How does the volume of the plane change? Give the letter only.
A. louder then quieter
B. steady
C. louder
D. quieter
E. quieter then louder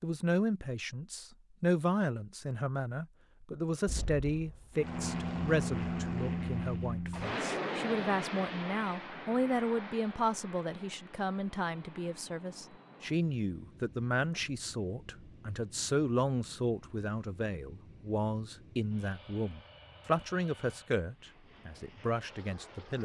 D.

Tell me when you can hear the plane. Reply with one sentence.
You can hear the plane from 4.8 to 22.9 s.